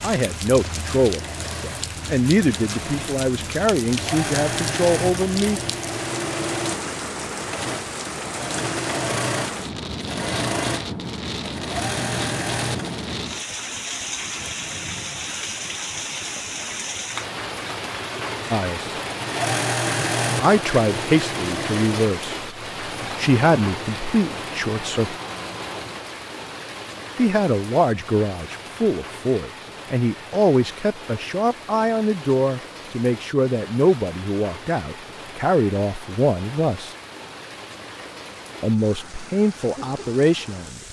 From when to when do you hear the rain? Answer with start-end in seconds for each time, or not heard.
0.0-40.8.